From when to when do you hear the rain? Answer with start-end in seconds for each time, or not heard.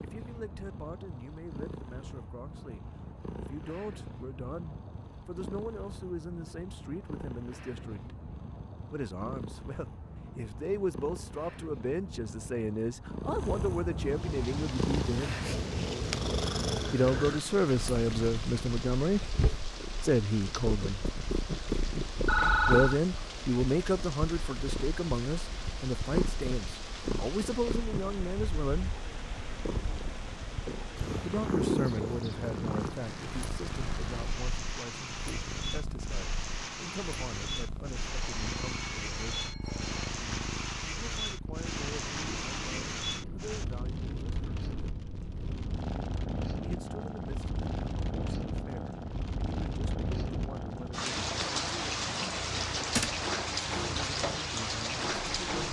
14.0-55.6.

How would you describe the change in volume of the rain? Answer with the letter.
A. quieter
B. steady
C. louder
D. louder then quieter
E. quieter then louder
C.